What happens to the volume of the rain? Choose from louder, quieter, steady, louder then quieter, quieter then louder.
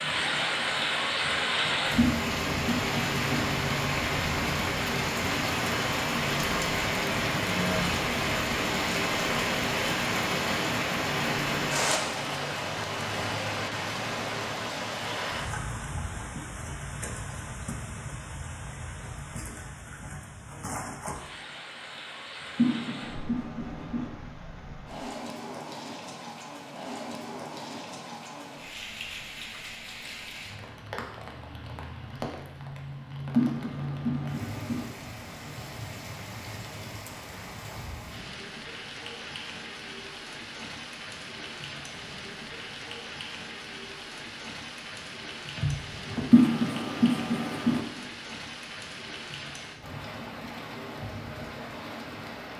quieter.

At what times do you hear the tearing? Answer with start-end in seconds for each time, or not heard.
45.5-46.2.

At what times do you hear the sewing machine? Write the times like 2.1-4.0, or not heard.
not heard.